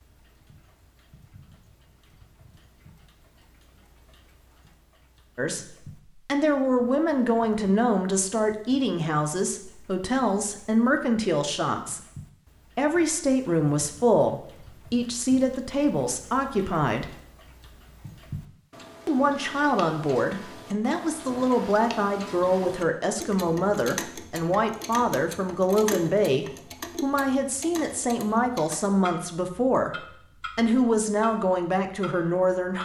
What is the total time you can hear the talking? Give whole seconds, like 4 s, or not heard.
25 s.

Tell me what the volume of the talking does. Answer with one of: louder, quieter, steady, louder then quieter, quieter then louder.
steady.